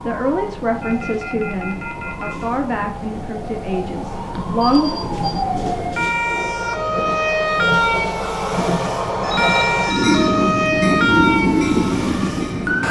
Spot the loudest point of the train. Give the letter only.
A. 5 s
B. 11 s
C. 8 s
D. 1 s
B.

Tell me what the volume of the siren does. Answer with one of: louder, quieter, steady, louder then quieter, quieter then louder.
louder.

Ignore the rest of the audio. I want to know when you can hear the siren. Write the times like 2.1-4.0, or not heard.
0.0-12.8.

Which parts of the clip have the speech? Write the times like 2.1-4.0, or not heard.
0.1-5.0.